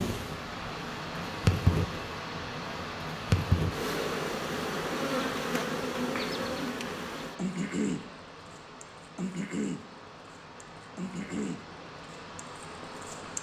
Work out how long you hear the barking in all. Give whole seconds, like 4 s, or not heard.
not heard.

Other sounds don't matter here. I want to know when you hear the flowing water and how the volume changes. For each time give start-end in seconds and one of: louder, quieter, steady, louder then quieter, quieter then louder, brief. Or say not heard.
0.0-13.3 quieter.